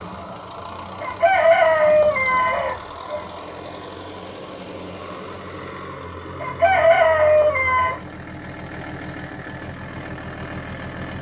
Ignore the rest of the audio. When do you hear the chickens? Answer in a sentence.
You can hear the chickens from 1.0 to 3.2 s and from 6.4 to 8.0 s.